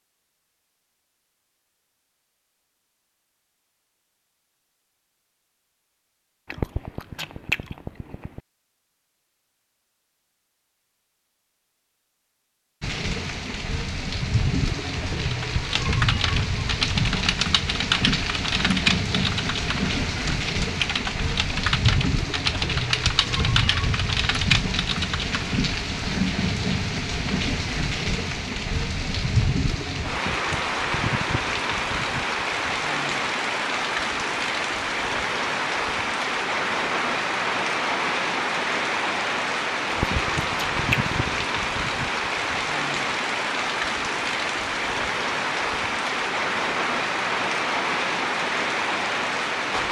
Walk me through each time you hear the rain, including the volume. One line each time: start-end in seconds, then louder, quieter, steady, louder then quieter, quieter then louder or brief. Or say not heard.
12.8-49.8 steady.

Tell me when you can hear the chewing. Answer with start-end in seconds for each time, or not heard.
6.5-8.4, 39.9-41.5.